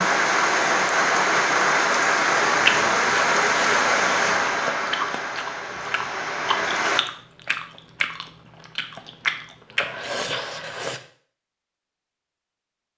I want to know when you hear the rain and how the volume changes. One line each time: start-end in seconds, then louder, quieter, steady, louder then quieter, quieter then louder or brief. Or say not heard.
0.0-7.0 quieter.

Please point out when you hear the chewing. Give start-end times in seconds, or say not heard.
2.5-11.0.